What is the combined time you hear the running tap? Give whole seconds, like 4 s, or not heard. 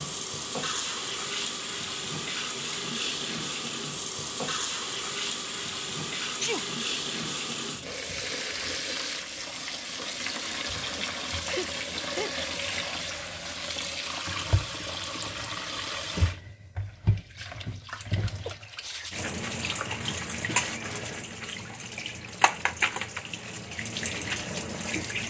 25 s.